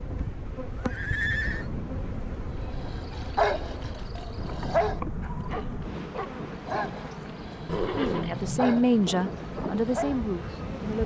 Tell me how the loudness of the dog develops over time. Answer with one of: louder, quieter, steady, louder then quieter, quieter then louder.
quieter then louder.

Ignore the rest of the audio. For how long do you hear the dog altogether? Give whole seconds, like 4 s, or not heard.
8 s.